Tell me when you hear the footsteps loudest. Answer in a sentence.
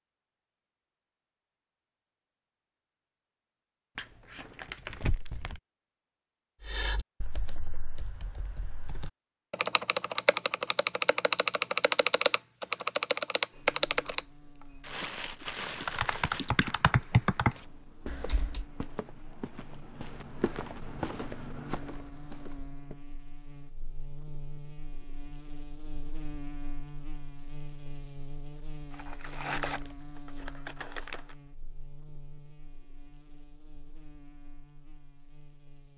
The loudest moment of the footsteps is at 21 seconds.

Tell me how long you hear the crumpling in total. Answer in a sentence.
You can hear the crumpling for 6 seconds altogether.